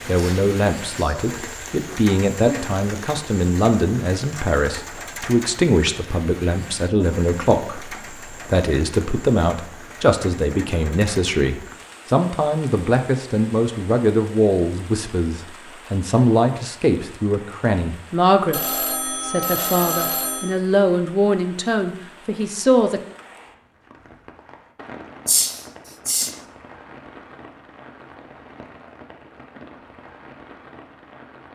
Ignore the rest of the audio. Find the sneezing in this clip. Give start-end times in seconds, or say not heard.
0.1-1.2, 25.2-26.4.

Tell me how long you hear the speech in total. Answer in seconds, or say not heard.
23 s.